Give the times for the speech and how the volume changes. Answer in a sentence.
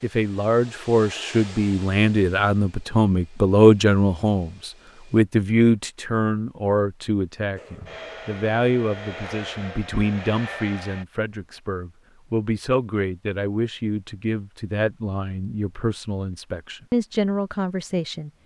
The speech can be heard from 0.0 to 18.3 s, getting quieter.